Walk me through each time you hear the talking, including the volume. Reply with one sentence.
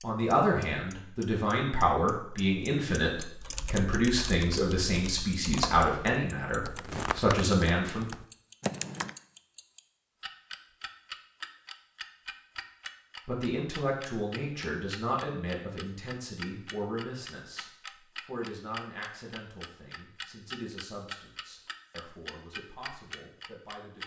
You can hear the talking from 0.0 to 8.1 s, at a steady volume; and from 13.2 to 24.0 s, getting quieter.